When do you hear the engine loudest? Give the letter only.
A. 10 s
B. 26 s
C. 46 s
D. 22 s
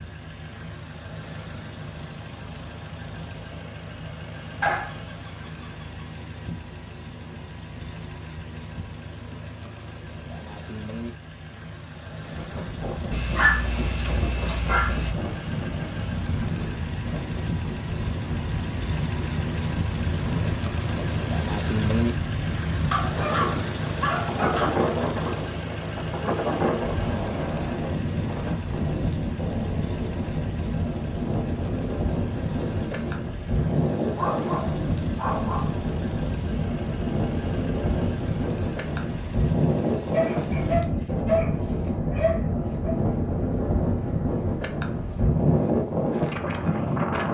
D.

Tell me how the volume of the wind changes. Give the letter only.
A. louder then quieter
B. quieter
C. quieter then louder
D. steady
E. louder
E.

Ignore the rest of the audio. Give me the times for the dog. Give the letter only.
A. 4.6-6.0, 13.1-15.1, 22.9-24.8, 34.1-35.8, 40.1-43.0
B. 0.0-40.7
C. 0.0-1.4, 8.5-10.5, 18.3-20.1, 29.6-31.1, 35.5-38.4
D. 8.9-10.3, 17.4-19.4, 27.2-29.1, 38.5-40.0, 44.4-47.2
A.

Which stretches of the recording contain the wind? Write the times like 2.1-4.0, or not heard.
12.2-47.2.